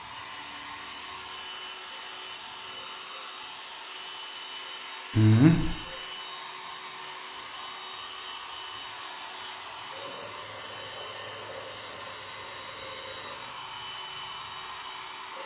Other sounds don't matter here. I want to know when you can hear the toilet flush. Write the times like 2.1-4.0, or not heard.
not heard.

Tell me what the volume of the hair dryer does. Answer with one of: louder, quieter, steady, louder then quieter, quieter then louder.
steady.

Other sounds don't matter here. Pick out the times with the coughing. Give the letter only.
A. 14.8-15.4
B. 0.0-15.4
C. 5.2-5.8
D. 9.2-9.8
C.